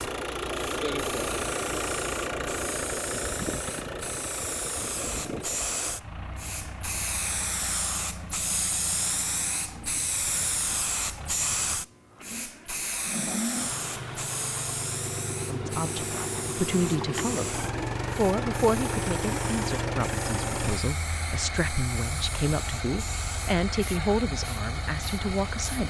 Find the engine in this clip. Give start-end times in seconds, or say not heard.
0.0-25.8.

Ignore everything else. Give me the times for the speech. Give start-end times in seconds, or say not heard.
15.4-25.8.